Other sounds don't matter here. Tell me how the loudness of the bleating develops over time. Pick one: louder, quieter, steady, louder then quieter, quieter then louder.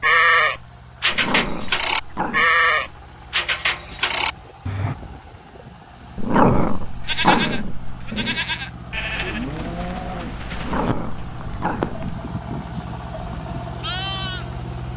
quieter.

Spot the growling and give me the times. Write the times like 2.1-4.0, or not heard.
1.1-2.5, 6.2-8.4, 10.6-12.2.